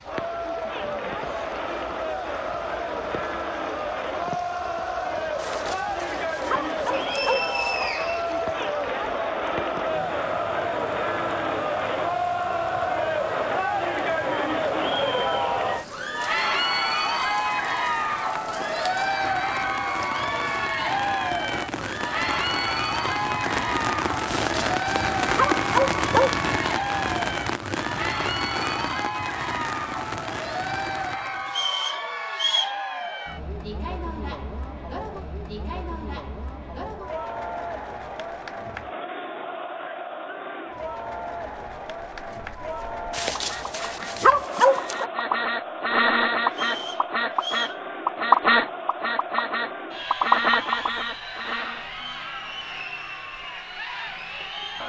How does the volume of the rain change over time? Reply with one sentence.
The loudness of the rain goes up.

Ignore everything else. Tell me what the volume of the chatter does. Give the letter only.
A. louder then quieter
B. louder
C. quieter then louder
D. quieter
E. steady
D.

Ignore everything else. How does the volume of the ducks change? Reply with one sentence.
The volume of the ducks goes up.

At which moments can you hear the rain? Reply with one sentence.
The rain can be heard from 0.0 to 31.6 s.